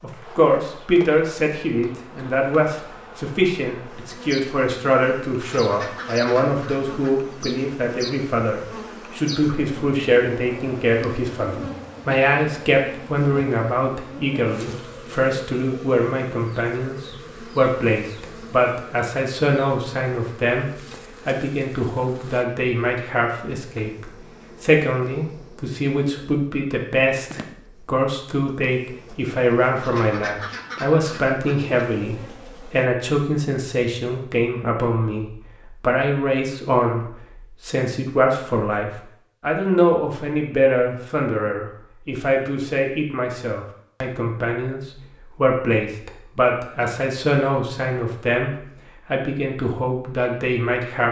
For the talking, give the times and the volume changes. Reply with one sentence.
The talking can be heard from 0.0 to 51.0 s, at a steady volume.